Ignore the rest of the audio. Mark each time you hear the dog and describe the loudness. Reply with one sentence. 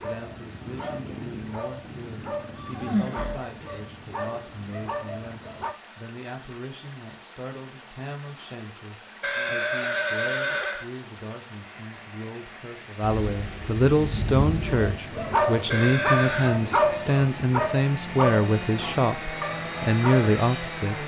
You can hear the dog from 0.0 to 5.8 s, at a steady volume; and from 14.7 to 20.3 s, getting quieter.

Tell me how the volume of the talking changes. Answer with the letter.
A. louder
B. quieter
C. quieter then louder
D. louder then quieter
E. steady
A.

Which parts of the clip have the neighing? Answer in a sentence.
You can hear the neighing from 2.5 to 3.5 s, from 9.2 to 10.9 s and from 15.7 to 16.6 s.